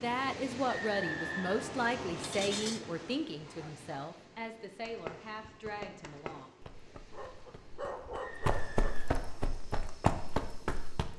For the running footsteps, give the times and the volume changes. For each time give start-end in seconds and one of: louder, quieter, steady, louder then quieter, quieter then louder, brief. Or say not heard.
4.8-11.1 louder.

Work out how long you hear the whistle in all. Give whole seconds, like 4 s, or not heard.
3 s.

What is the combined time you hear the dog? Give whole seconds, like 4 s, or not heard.
4 s.